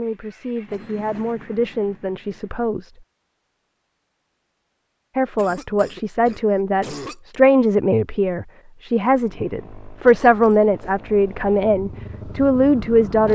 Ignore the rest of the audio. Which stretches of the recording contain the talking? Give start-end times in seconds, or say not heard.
0.0-2.9, 5.2-13.3.